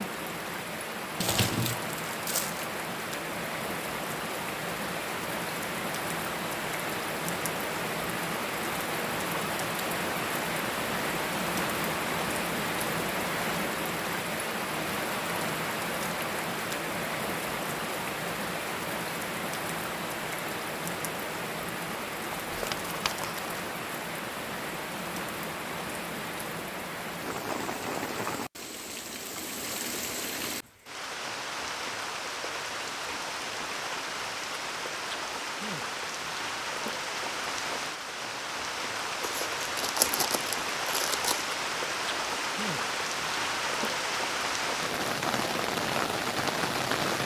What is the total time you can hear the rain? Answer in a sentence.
You can hear the rain for 47 seconds altogether.